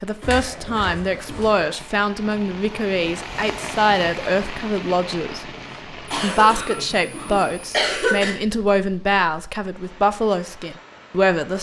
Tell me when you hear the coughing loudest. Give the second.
8 s.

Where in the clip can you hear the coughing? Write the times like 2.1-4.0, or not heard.
0.2-1.5, 6.0-8.3.